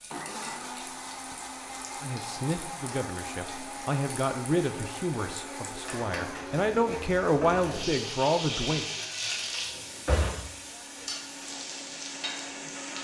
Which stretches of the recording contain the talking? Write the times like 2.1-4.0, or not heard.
2.0-8.8.